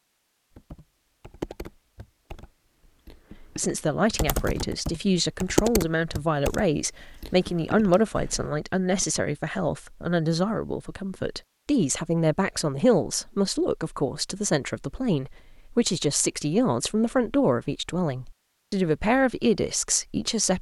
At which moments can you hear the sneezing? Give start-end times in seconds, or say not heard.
not heard.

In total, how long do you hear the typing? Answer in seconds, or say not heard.
8 s.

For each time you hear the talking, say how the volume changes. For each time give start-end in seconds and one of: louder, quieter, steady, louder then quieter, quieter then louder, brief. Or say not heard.
3.4-20.5 steady.